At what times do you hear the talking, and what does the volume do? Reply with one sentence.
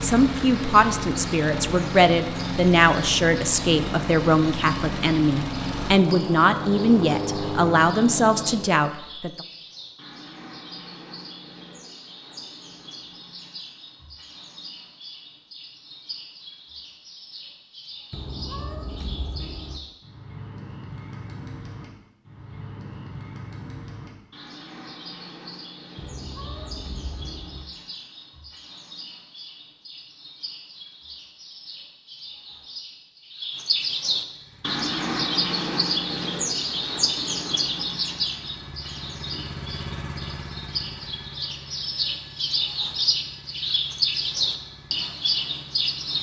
The talking can be heard from 0.0 to 9.3 s, at a steady volume.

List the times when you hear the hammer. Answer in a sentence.
You can't hear the hammer here.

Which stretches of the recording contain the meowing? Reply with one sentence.
You can hear the meowing from 18.1 to 19.8 s and from 25.9 to 27.6 s.